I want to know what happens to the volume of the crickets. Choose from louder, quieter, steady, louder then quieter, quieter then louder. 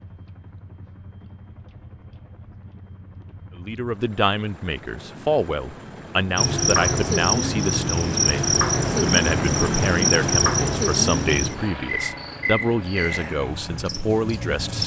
quieter.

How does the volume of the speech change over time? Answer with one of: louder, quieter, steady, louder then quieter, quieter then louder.
steady.